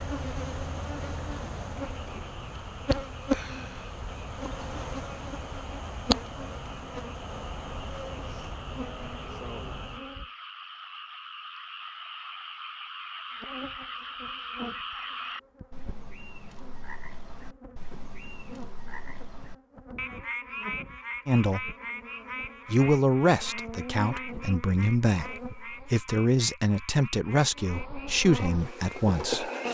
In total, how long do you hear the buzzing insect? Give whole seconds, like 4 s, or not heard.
25 s.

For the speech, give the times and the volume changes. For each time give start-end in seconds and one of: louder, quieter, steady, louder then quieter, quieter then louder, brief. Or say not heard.
21.2-21.7 brief
22.6-29.5 steady.